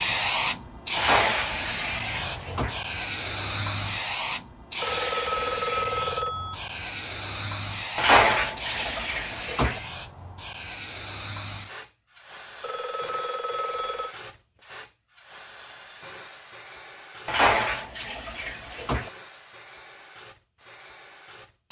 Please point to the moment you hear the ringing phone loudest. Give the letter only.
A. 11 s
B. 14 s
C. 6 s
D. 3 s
C.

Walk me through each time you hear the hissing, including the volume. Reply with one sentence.
You can hear the hissing from 0.0 to 21.6 s, getting quieter.